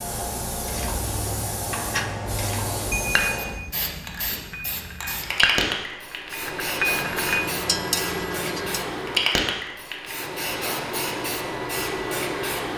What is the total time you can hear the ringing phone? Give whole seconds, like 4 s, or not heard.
3 s.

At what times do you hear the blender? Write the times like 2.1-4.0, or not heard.
not heard.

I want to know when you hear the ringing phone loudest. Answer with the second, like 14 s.
3 s.